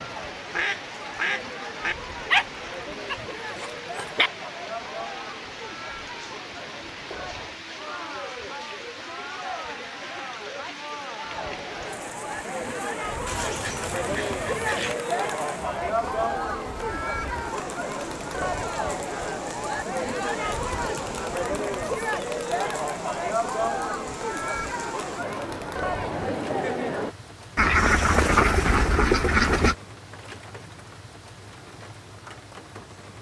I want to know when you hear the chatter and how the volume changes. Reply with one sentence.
You can hear the chatter from 0.0 to 27.1 s, getting louder.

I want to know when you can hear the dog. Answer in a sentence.
The dog can be heard from 2.3 to 4.3 s.